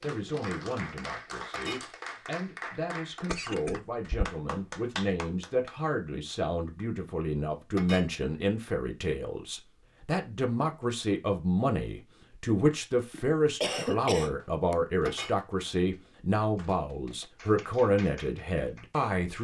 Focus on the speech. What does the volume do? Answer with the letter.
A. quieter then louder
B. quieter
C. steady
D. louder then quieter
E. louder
E.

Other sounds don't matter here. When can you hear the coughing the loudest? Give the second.
14 s.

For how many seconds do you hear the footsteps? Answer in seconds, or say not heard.
not heard.